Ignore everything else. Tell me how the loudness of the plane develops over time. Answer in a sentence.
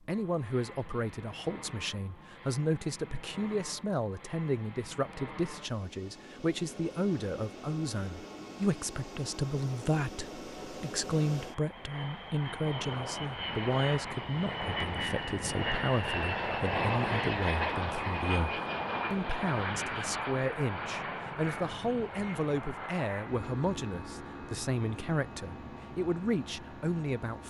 The loudness of the plane goes up, then down.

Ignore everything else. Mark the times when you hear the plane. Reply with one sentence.
The plane can be heard from 0.0 to 27.4 s.